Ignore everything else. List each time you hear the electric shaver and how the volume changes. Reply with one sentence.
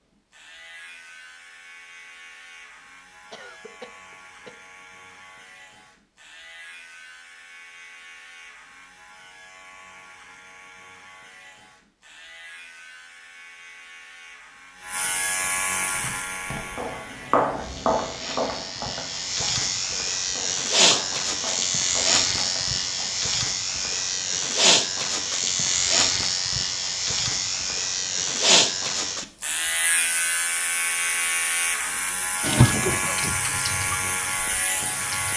You can hear the electric shaver from 0.1 to 35.3 s, getting louder.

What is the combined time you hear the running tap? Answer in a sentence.
You can hear the running tap for 3 seconds altogether.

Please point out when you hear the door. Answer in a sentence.
You can't hear the door here.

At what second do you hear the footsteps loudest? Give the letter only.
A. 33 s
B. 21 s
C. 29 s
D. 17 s
D.